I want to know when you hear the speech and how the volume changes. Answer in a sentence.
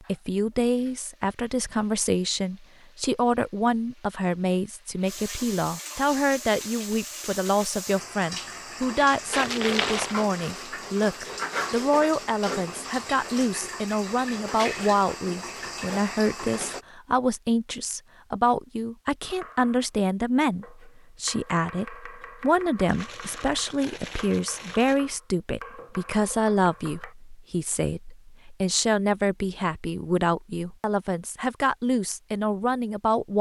The speech can be heard from 0.1 to 33.3 s, at a steady volume.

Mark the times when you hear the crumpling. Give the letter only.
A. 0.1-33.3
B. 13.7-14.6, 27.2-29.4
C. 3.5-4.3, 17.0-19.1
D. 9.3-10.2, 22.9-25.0
D.